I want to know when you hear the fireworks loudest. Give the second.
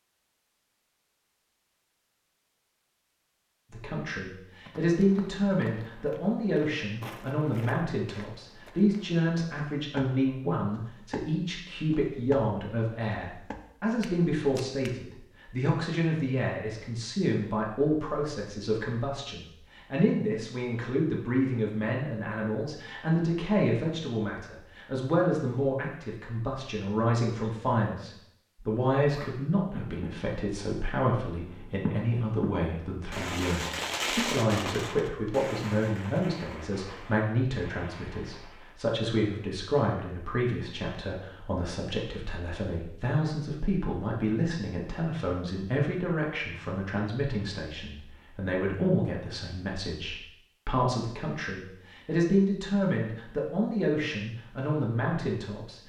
34 s.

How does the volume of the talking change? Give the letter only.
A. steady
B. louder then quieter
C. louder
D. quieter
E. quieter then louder
A.